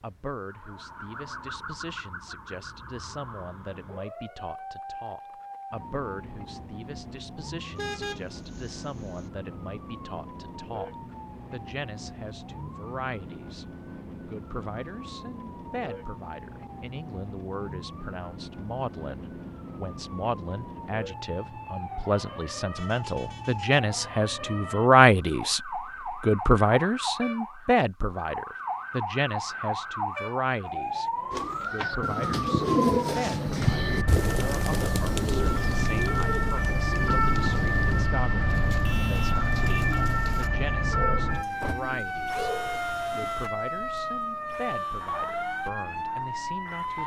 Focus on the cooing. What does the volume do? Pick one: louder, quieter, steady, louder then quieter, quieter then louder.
quieter.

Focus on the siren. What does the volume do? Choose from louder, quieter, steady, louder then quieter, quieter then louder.
louder.